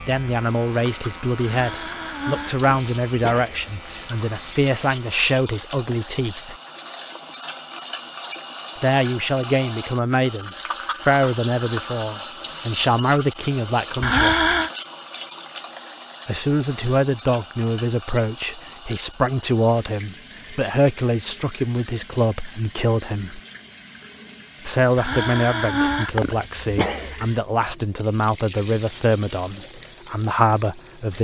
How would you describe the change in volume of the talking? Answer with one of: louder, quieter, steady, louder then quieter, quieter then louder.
steady.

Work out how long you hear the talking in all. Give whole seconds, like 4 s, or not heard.
26 s.